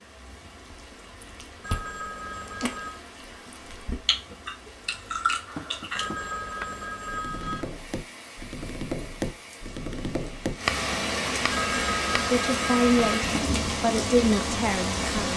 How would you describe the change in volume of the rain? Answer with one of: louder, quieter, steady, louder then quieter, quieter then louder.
louder.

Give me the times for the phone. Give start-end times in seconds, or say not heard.
1.6-3.0, 6.0-7.8, 11.5-13.4.